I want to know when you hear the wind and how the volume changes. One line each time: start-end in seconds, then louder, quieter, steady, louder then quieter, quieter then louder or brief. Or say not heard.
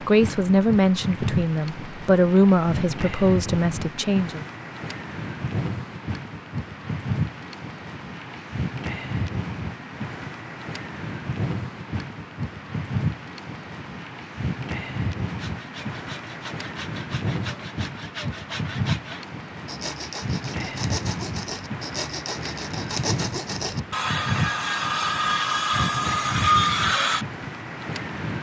0.0-28.3 steady.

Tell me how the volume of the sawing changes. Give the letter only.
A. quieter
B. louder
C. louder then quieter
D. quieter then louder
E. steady
B.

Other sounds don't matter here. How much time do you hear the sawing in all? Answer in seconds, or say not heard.
12 s.